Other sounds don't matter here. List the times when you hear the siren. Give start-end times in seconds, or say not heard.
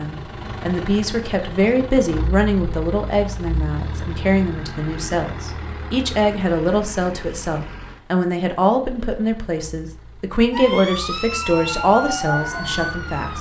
10.5-13.3.